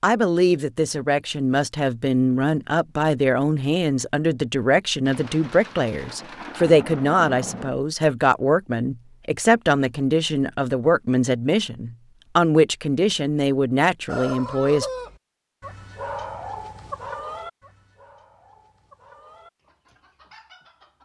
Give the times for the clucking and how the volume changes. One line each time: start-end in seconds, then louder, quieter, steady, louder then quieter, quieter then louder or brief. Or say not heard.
14.1-21.0 quieter.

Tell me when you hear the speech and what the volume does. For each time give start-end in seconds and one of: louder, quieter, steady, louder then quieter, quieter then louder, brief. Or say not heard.
0.0-14.8 steady.